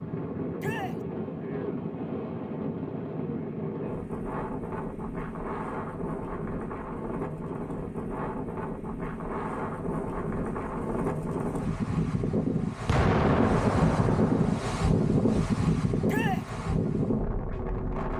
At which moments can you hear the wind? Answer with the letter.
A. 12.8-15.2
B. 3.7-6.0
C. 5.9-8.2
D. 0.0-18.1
D.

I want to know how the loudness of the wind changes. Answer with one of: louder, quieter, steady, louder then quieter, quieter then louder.
louder.